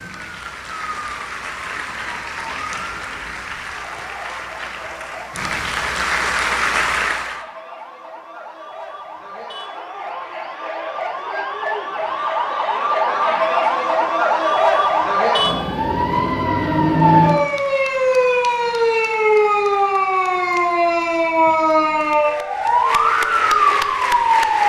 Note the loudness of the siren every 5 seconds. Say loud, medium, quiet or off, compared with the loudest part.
quiet, quiet, loud, loud, loud.